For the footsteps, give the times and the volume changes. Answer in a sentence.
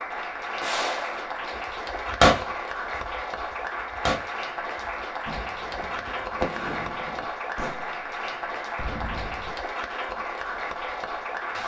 The footsteps can't be heard in this clip.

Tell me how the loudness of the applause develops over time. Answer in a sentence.
The loudness of the applause stays about the same.